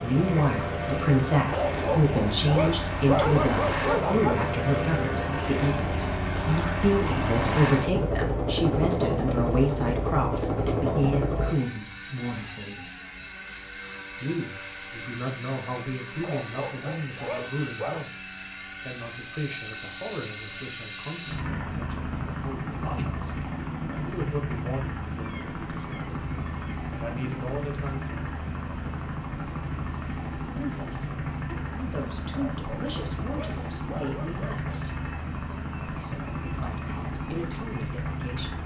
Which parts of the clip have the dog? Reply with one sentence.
The dog can be heard from 1.5 to 4.5 s, from 16.2 to 18.1 s and from 32.3 to 34.8 s.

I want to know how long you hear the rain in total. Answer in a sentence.
The rain can't be heard in this clip.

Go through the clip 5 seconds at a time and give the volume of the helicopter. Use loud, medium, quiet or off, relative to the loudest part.
loud, loud, loud, medium, medium, medium, medium, medium.